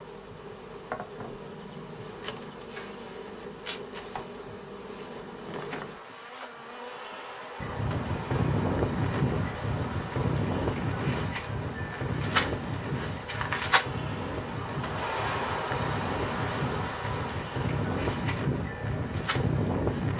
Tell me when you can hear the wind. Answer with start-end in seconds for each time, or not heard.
7.6-20.1.